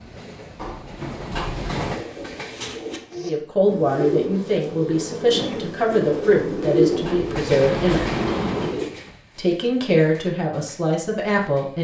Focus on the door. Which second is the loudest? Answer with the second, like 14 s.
8 s.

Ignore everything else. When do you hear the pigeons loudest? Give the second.
7 s.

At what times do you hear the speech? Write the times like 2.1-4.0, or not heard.
3.2-8.1, 9.3-11.7.